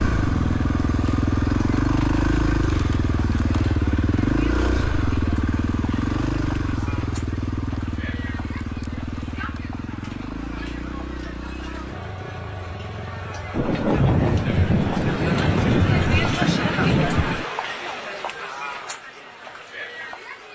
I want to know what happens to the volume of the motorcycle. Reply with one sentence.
The volume of the motorcycle goes down.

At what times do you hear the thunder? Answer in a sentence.
The thunder can be heard from 13.5 to 17.4 s.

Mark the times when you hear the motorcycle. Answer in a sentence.
You can hear the motorcycle from 0.0 to 13.7 s.